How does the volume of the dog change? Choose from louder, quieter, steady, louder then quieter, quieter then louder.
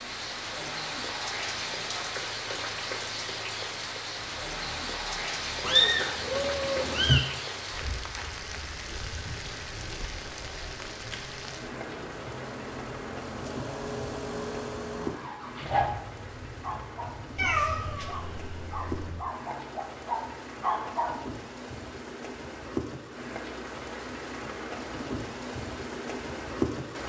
louder.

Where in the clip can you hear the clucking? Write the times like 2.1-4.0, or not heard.
not heard.